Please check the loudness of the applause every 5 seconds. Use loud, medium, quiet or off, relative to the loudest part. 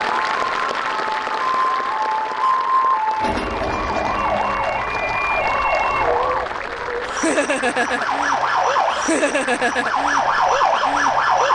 loud, loud, medium.